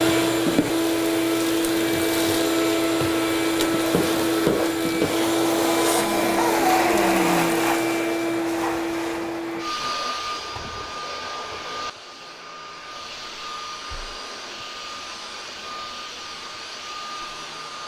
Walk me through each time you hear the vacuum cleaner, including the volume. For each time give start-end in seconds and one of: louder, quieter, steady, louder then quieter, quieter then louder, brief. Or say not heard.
0.0-17.8 quieter.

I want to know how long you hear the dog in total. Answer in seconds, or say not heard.
2 s.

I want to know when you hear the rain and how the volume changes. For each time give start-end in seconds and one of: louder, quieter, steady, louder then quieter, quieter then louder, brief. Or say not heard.
not heard.